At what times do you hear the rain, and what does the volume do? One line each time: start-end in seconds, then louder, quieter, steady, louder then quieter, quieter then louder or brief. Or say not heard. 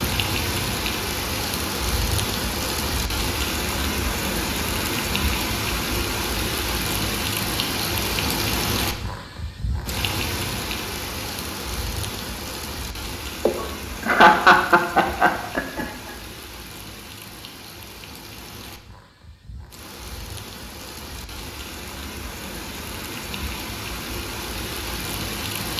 0.0-25.7 quieter then louder.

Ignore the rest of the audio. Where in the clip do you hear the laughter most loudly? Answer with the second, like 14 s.
14 s.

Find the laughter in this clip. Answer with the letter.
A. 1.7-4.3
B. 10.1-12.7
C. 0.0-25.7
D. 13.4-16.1
D.